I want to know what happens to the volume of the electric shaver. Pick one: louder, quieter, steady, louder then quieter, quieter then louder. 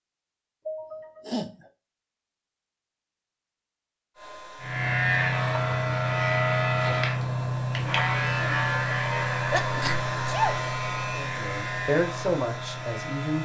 quieter.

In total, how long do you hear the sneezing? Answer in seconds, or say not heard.
2 s.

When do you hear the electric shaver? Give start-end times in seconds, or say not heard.
4.6-13.4.